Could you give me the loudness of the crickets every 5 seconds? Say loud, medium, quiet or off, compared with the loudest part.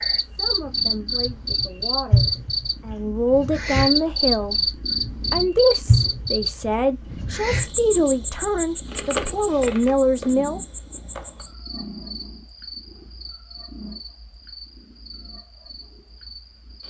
loud, loud, quiet, quiet.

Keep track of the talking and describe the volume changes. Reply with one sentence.
The volume of the talking goes up.